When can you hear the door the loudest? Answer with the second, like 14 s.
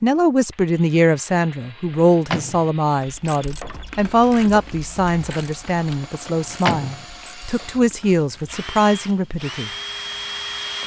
7 s.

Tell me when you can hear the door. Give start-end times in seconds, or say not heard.
1.9-2.7, 6.2-7.0.